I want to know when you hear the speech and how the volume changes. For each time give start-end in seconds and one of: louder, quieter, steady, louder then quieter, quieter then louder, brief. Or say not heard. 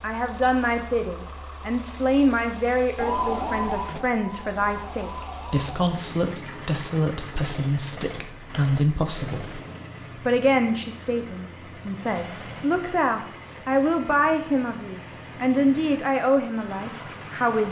0.0-17.6 steady.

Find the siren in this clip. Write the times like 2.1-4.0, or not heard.
3.0-5.7.